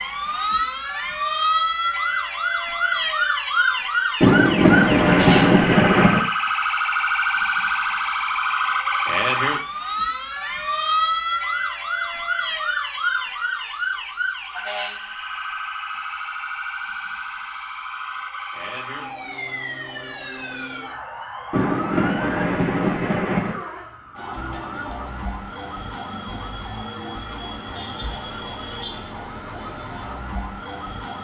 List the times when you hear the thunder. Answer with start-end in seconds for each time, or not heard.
4.2-6.2, 21.5-23.6.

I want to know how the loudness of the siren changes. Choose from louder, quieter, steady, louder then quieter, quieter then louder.
quieter.